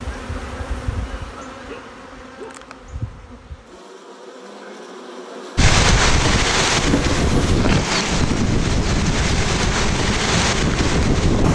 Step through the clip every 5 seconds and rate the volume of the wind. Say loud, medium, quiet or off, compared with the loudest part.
off, loud, loud.